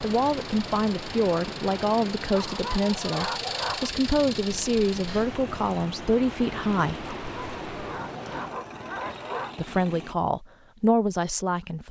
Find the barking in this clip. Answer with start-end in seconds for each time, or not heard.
2.4-3.9, 7.0-9.7.